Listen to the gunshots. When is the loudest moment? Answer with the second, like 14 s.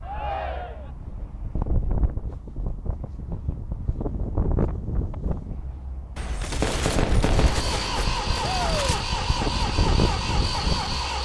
7 s.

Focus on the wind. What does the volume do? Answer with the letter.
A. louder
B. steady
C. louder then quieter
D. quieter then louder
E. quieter
A.